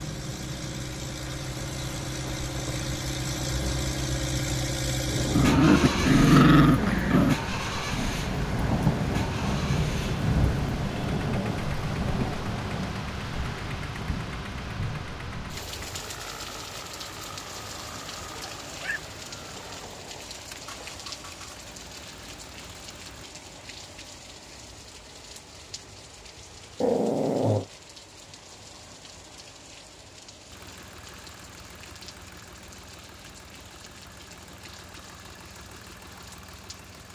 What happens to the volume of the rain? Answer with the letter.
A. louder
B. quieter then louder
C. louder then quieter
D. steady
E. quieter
C.